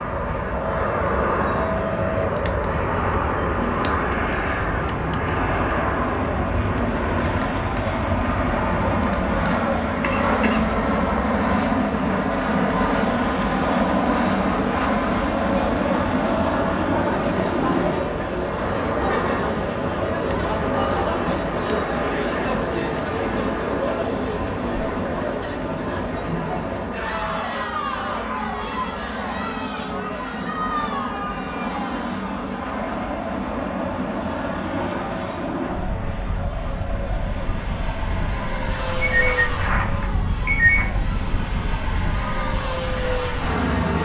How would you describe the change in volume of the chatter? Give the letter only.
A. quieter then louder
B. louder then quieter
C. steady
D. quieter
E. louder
B.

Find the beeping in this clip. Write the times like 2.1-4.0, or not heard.
38.9-40.9.